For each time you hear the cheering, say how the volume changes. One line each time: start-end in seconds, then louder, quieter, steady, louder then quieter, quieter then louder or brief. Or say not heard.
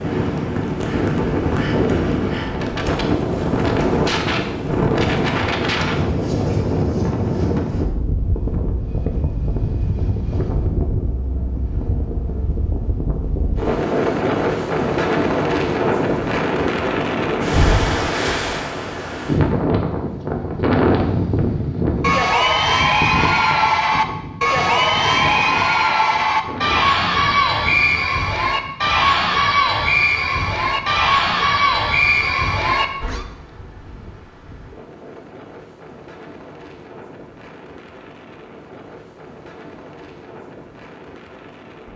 22.0-33.2 steady.